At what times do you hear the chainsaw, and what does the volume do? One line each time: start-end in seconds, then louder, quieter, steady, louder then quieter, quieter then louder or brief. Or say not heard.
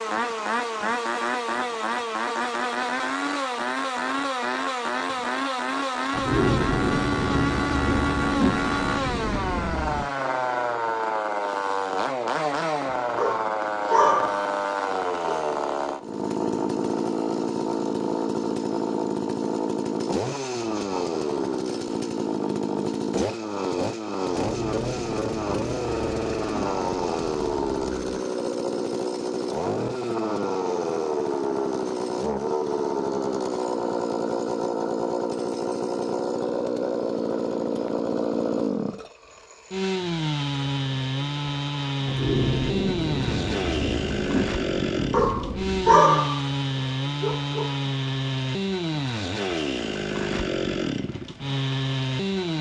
0.0-52.5 steady.